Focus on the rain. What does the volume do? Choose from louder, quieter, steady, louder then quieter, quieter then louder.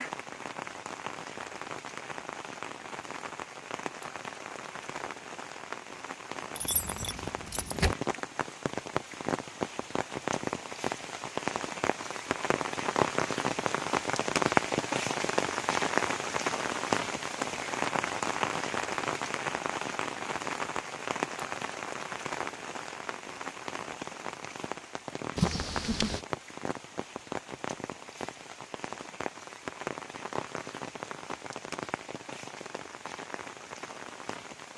louder then quieter.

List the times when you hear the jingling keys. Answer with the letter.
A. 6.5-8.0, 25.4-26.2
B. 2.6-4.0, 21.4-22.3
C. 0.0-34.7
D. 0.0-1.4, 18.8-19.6
A.